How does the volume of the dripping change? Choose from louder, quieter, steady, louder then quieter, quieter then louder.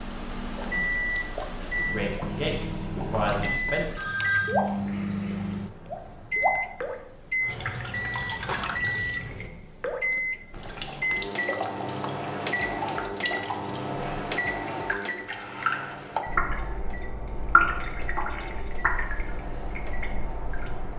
louder then quieter.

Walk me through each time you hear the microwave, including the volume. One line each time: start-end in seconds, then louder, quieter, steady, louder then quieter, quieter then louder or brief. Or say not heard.
0.0-20.9 quieter.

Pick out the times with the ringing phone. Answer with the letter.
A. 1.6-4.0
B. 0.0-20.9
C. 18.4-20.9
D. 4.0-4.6
D.